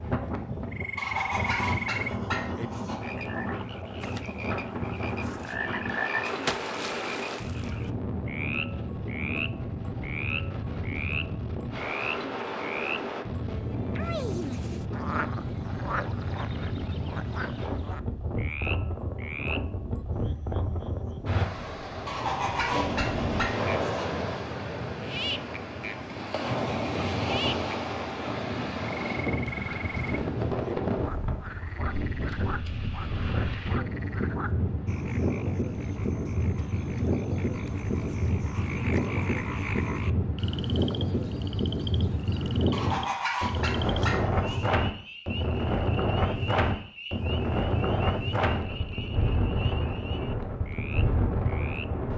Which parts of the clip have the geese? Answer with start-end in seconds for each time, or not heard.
0.9-3.0, 22.1-24.1, 42.7-44.7.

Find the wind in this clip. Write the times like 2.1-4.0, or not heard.
0.0-52.1.